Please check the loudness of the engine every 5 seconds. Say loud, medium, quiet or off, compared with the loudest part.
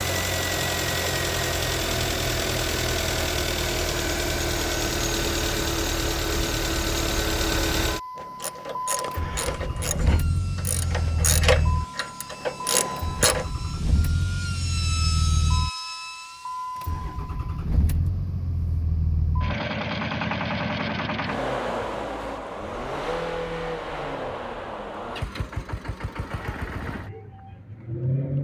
loud, loud, medium, medium, loud, medium.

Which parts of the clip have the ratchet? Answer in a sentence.
You can hear the ratchet from 8.2 to 13.4 s.